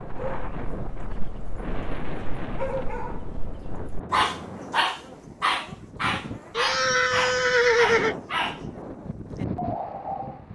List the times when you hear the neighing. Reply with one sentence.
The neighing can be heard from 6.5 to 8.2 s.